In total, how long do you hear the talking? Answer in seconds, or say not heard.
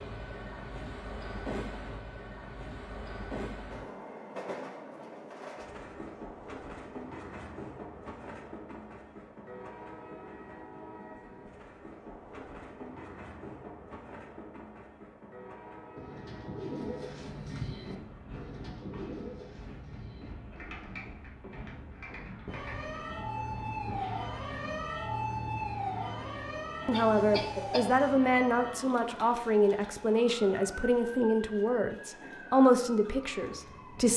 7 s.